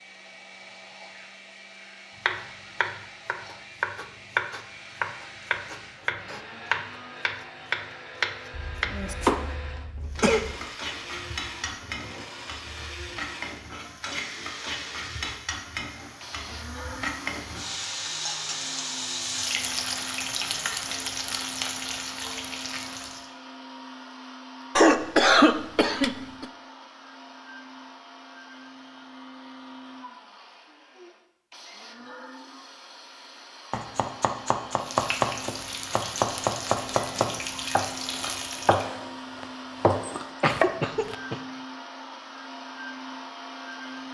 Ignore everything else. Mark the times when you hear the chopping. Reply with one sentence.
You can hear the chopping from 2.2 to 9.4 s and from 33.7 to 41.1 s.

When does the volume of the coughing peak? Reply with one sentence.
The loudest moment of the coughing is at 25 seconds.